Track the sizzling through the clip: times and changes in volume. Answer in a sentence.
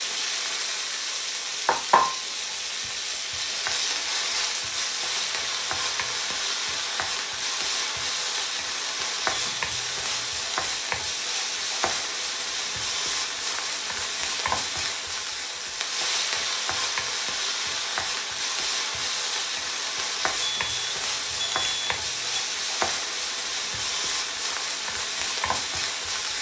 You can hear the sizzling from 0.0 to 26.3 s, at a steady volume.